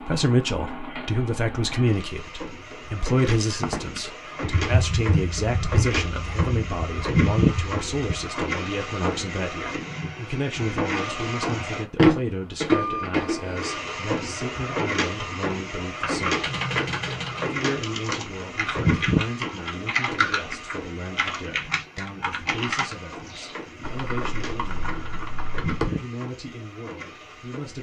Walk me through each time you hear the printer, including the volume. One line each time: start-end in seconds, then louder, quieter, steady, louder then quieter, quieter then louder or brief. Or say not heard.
0.0-27.7 louder then quieter.